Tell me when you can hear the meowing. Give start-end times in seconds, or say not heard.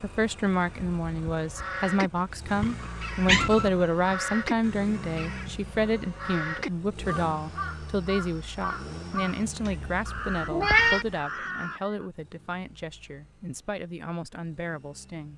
2.5-3.7, 9.7-11.1.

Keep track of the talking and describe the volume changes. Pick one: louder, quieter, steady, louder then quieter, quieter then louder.
quieter.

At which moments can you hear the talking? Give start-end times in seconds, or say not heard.
0.0-15.3.